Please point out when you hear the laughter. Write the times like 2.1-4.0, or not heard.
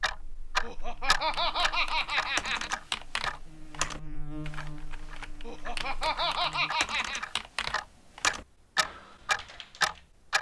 0.6-2.7, 5.5-7.3.